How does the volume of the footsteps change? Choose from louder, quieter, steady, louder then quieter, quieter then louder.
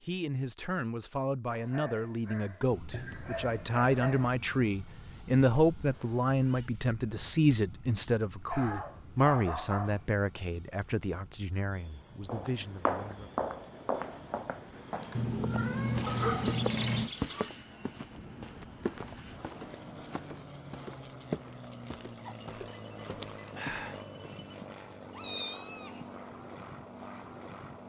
quieter.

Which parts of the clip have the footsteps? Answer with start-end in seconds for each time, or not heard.
12.2-24.1.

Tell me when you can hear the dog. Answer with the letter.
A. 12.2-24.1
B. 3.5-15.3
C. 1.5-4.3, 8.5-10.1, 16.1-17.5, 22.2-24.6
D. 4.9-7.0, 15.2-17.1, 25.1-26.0
C.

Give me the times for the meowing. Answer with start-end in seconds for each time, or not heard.
4.9-7.0, 15.2-17.1, 25.1-26.0.